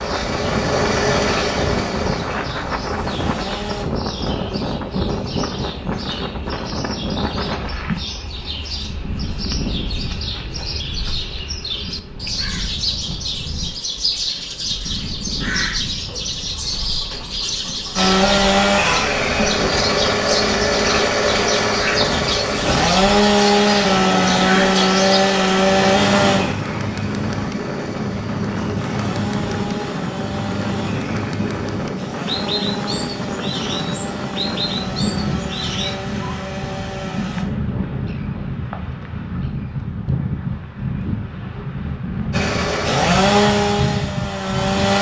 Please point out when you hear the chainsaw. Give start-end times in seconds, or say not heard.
0.0-3.9, 17.9-37.5, 42.3-44.9.